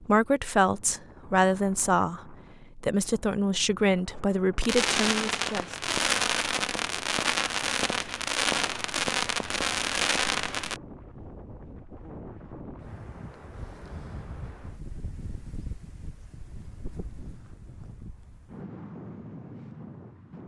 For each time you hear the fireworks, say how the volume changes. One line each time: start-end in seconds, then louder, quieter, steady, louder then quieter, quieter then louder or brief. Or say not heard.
4.6-10.8 steady.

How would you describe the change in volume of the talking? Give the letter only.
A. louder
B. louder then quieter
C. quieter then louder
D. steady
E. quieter
D.